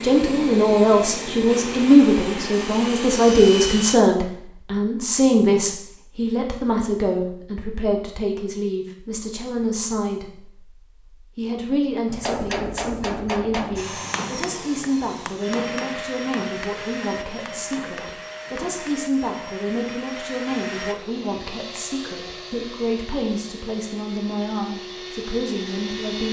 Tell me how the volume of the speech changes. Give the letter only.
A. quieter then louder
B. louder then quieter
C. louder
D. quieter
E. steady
D.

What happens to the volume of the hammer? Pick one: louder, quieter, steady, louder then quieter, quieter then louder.
quieter.